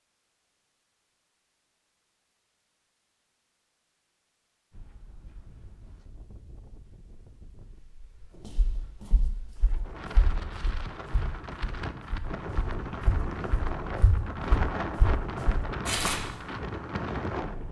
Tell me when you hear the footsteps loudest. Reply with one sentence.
The loudest moment of the footsteps is at 16 seconds.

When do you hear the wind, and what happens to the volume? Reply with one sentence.
You can hear the wind from 4.7 to 17.6 s, getting louder.